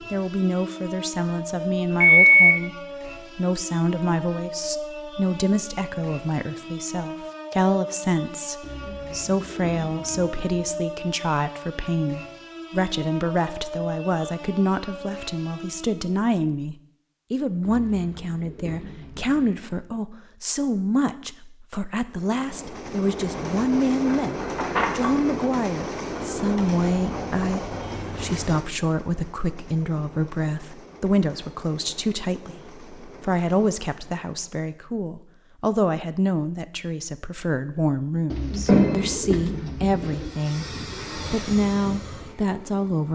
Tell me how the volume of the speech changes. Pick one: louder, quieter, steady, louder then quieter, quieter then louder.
steady.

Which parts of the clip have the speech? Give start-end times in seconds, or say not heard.
0.1-43.1.